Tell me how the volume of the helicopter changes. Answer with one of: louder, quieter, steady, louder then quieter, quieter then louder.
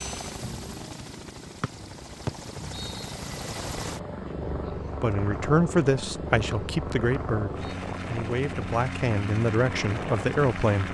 louder.